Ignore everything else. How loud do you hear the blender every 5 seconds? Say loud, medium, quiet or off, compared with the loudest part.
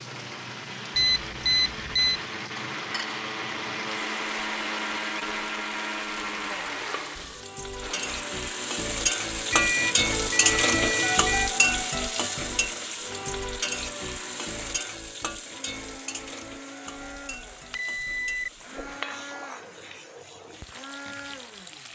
loud, loud, medium, medium, medium.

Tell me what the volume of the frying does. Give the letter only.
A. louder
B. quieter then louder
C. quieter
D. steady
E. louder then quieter
E.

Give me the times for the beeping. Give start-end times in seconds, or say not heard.
0.9-2.2, 9.5-11.5, 17.0-18.9.